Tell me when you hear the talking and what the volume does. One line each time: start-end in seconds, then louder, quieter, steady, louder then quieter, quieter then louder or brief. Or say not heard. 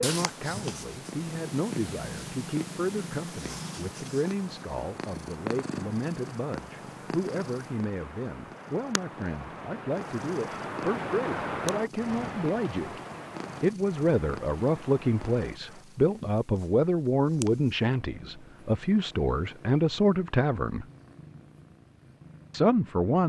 0.0-13.0 steady
13.6-20.9 steady
22.5-23.2 brief.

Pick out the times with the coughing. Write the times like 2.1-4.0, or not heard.
not heard.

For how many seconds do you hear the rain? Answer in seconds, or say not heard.
16 s.